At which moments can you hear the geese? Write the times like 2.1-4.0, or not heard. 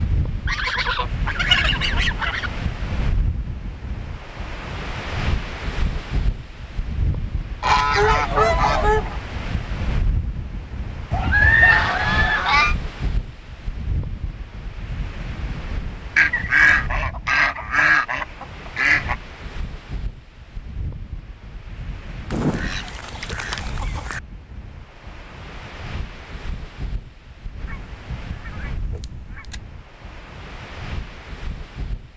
0.5-2.5, 7.6-9.2, 11.1-12.8, 16.1-19.1, 22.3-24.2, 27.6-29.6.